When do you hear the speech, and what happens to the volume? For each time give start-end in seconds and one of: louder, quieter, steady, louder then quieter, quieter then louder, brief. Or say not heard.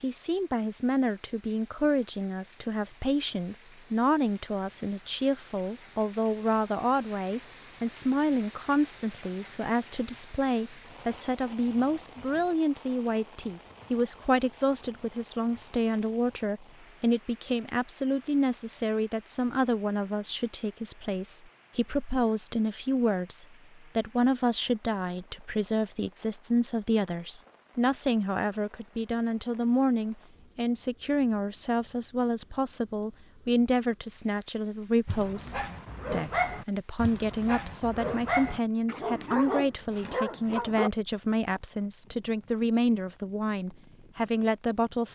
0.0-45.1 steady.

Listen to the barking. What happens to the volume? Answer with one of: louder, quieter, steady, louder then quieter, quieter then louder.
quieter then louder.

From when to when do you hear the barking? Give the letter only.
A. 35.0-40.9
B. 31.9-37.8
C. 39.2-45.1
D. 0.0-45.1
A.